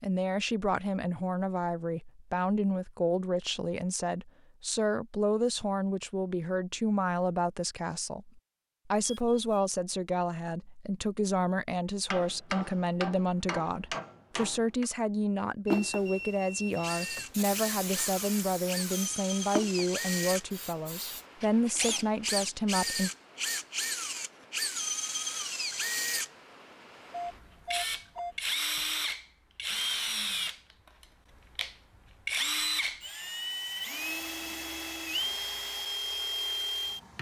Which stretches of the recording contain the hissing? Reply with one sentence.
The hissing can be heard from 15.7 to 21.2 s.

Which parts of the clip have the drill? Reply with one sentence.
The drill can be heard from 16.8 to 37.1 s.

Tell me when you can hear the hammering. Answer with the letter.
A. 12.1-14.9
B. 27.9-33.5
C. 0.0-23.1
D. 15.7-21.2
A.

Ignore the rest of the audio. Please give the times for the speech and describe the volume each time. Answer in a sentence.
You can hear the speech from 0.0 to 23.1 s, at a steady volume.